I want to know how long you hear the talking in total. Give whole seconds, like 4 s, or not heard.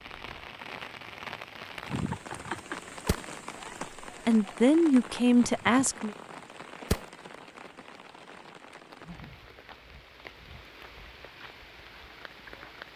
2 s.